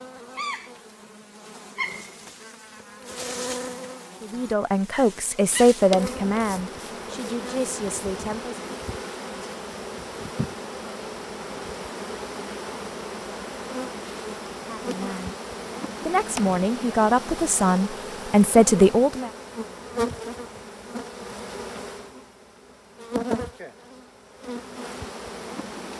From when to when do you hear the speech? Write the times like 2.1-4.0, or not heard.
4.2-8.6, 14.6-15.3, 16.1-19.3.